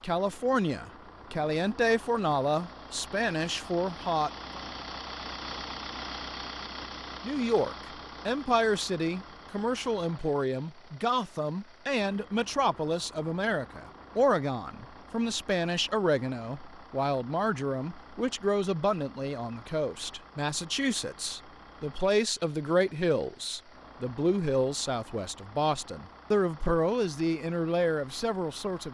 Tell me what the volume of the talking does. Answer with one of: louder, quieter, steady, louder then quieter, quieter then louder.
steady.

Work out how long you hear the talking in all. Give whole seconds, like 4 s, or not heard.
26 s.